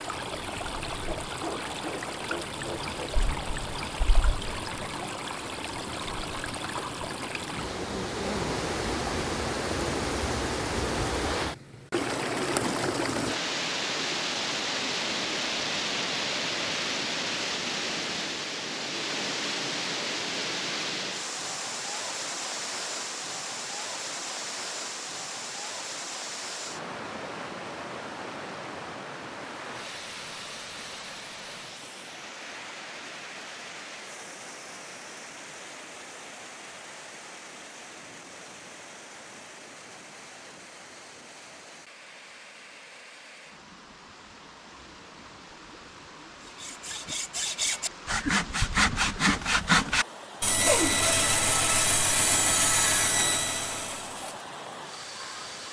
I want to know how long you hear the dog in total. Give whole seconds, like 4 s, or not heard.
2 s.